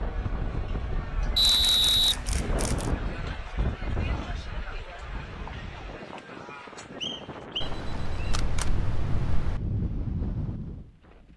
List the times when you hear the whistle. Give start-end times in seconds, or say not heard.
1.4-2.9, 7.0-8.4.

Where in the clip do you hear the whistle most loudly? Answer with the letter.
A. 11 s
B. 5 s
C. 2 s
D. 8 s
C.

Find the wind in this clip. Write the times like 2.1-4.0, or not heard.
0.0-11.3.